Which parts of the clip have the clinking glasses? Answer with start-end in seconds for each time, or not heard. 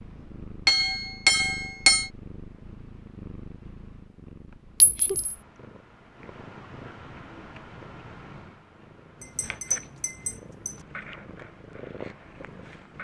0.7-2.1, 4.8-5.3, 9.2-10.8.